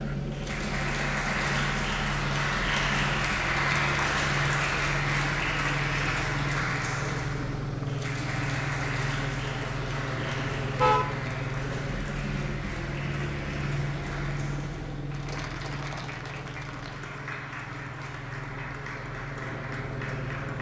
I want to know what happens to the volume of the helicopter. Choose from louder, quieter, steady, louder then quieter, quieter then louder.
quieter.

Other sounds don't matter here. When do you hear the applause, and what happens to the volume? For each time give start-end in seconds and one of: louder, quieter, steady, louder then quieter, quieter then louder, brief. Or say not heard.
0.0-20.5 quieter.